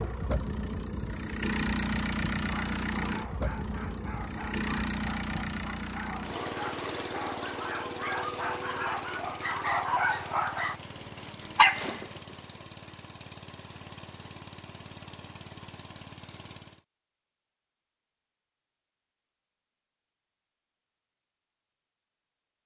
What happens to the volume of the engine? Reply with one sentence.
The loudness of the engine goes down.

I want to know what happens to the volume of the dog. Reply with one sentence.
The loudness of the dog goes up.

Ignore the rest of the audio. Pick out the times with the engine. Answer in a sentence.
The engine can be heard from 0.0 to 16.9 s.